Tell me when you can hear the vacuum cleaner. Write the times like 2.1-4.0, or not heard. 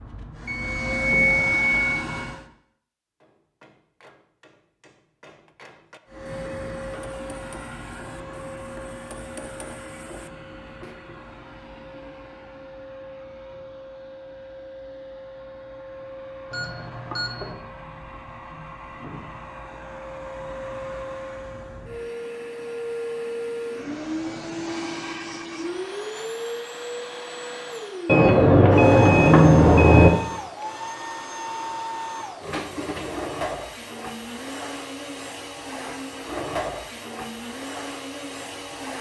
0.0-2.5, 6.0-38.9.